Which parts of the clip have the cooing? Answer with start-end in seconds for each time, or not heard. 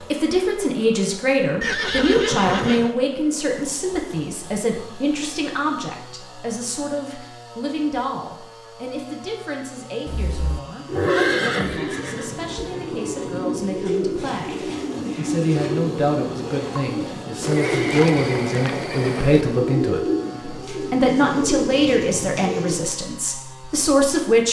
10.8-22.8.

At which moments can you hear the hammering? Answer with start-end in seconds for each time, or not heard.
not heard.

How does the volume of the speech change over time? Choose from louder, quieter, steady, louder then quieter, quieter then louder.
quieter then louder.